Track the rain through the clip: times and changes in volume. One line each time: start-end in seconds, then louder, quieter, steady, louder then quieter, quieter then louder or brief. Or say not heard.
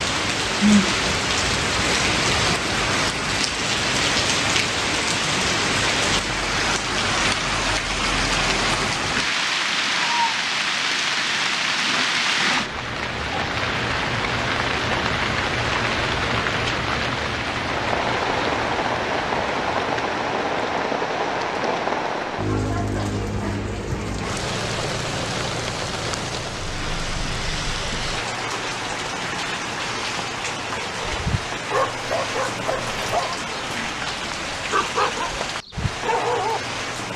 0.0-37.1 quieter.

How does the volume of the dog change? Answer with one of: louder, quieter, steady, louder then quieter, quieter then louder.
quieter then louder.